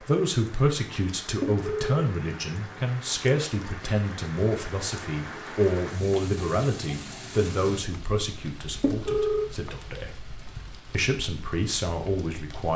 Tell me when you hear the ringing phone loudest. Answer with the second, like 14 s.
9 s.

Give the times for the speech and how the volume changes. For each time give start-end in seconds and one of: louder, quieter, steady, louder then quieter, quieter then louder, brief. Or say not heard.
0.0-10.2 quieter
10.9-12.7 brief.